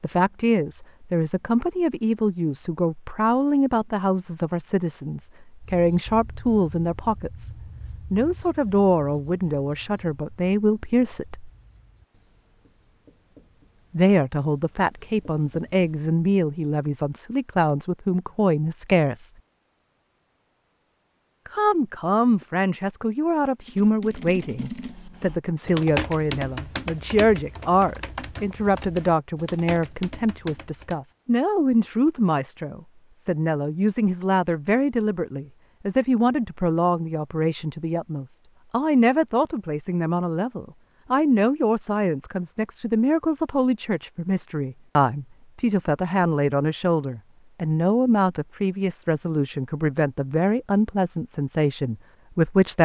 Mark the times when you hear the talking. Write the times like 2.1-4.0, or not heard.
0.0-7.5, 8.1-11.5, 13.9-19.3, 21.4-52.8.